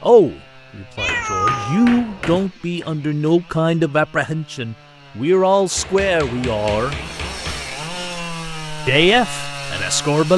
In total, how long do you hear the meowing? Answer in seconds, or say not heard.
4 s.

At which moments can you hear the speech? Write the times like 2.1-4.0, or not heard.
0.0-7.0, 8.8-10.3.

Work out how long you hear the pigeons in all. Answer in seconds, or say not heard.
not heard.